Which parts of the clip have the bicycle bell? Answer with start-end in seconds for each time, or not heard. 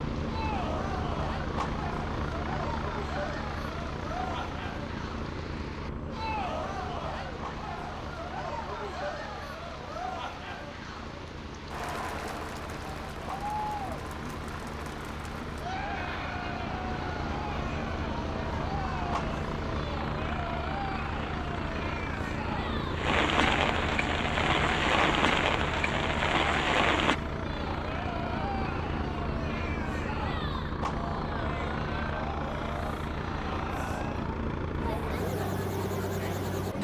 not heard.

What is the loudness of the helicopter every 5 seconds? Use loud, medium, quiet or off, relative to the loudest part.
loud, medium, medium, loud, loud, loud, loud, loud.